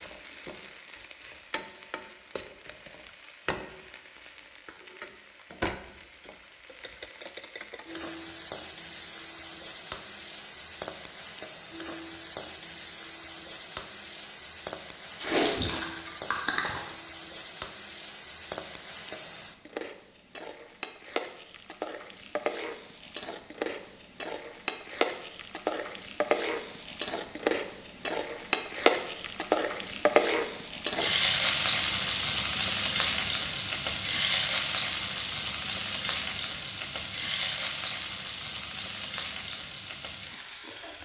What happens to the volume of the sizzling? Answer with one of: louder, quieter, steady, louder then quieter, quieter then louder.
louder.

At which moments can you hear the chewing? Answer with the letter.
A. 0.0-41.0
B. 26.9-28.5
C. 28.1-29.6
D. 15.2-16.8
D.